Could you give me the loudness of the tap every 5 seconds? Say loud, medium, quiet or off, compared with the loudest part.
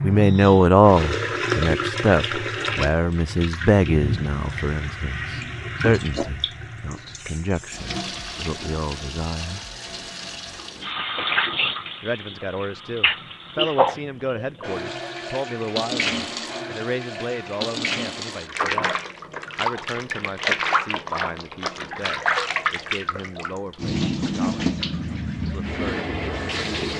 loud, medium, loud, loud, loud, loud.